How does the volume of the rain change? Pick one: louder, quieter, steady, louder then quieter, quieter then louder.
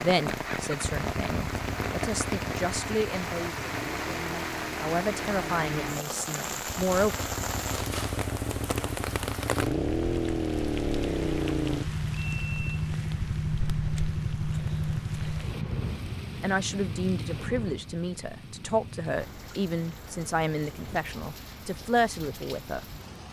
quieter.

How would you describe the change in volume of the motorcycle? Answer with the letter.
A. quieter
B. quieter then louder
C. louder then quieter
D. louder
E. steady
D.